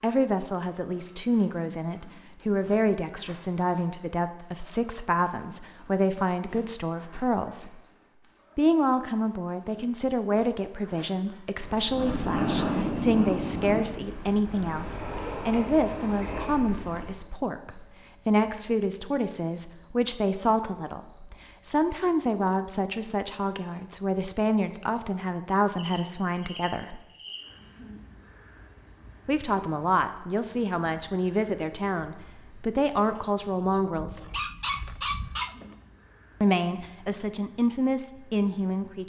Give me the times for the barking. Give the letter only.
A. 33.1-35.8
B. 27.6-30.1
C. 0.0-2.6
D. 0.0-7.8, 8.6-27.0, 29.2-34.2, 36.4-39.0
A.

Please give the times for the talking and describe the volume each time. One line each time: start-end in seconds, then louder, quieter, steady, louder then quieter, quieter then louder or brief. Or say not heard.
0.0-7.8 steady
8.6-27.0 steady
29.2-34.2 steady
36.4-39.0 brief.